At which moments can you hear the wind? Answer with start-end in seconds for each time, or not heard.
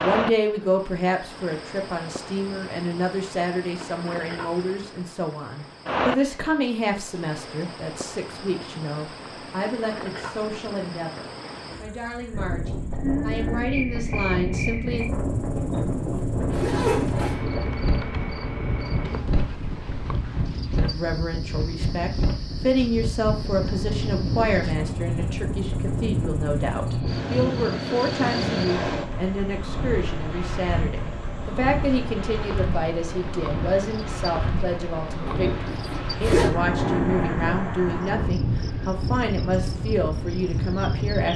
12.3-41.3.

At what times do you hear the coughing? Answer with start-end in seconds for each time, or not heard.
not heard.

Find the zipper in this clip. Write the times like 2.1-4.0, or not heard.
15.6-17.4, 35.2-36.5.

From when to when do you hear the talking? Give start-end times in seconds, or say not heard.
0.0-15.1, 20.8-41.3.